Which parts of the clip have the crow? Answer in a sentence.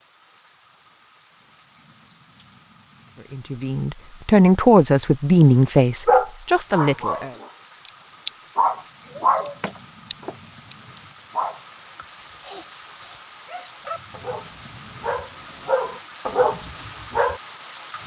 You can't hear the crow here.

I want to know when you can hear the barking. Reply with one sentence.
The barking can be heard from 6.0 to 17.4 s.